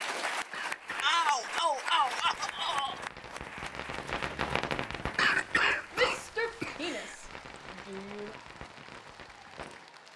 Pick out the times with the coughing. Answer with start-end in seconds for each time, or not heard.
0.5-1.5, 5.2-7.2.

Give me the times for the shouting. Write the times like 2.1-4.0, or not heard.
1.0-3.0, 5.9-8.3.